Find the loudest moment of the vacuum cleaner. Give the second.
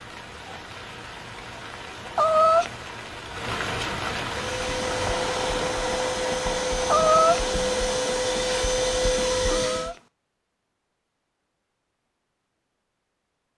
9 s.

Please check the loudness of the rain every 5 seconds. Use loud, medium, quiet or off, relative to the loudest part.
loud, loud, off.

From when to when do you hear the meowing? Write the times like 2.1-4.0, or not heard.
2.1-2.8, 6.9-7.5, 9.4-10.1.